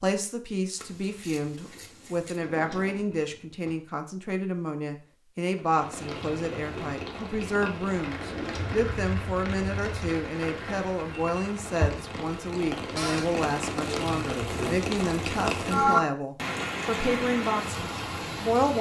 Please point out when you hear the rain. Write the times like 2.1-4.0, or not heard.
5.5-18.7.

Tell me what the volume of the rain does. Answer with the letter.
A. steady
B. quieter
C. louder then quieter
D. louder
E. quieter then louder
D.